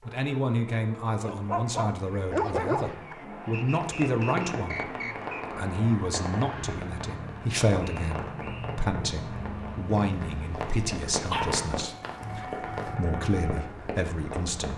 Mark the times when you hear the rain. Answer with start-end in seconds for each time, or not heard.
3.8-14.7.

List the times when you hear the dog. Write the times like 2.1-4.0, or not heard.
1.2-3.1, 11.3-12.9.